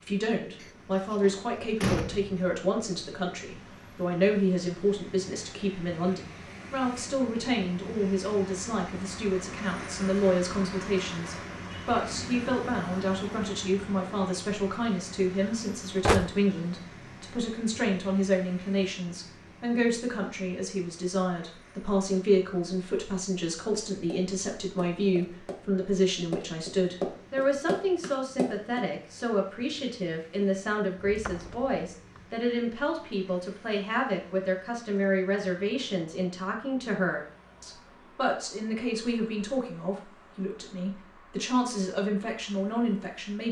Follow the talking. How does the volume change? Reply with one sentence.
The volume of the talking stays about the same.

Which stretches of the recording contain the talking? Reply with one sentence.
The talking can be heard from 0.0 to 43.4 s.